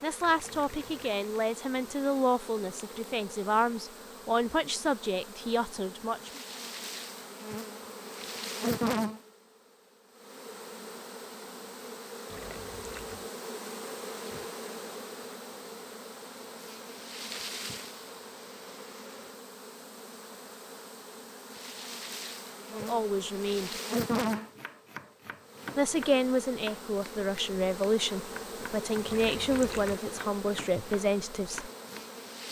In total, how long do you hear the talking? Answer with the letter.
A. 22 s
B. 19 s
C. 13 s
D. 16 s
C.